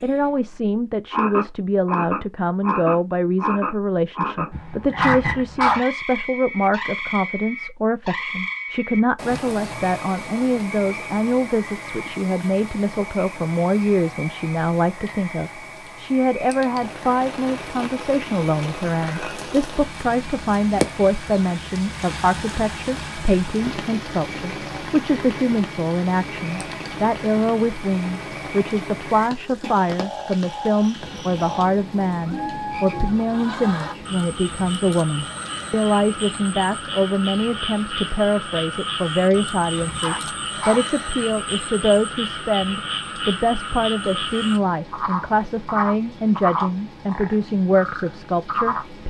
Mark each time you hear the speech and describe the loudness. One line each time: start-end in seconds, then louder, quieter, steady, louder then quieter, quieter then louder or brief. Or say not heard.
0.0-49.0 steady.